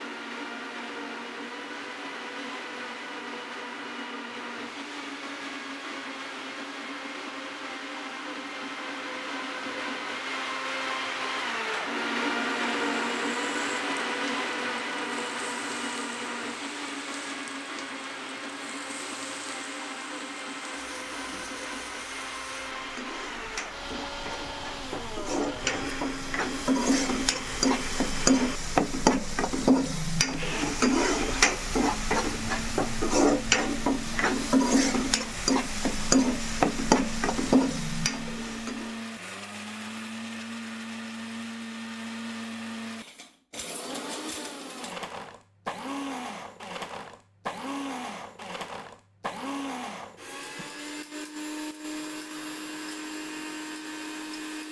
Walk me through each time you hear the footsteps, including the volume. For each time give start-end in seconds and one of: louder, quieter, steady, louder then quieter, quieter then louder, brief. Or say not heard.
not heard.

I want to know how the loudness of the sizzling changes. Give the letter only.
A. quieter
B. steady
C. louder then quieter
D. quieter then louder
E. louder
E.